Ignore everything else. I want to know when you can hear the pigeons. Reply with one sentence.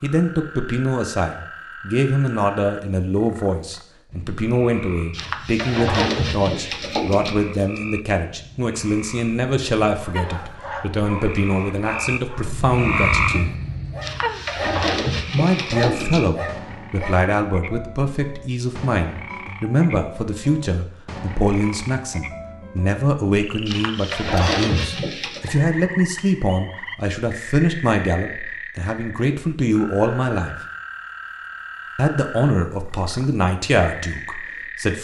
You can hear the pigeons from 5.1 to 7.8 s, from 14.0 to 16.2 s and from 23.6 to 25.5 s.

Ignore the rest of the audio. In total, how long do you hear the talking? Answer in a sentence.
You can hear the talking for 32 seconds altogether.